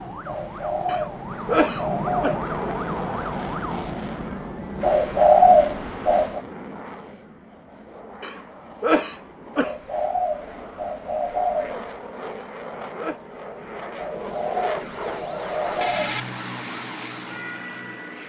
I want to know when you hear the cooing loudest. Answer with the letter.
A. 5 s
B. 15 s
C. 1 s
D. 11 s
A.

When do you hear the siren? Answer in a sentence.
The siren can be heard from 0.0 to 3.9 s and from 14.3 to 18.2 s.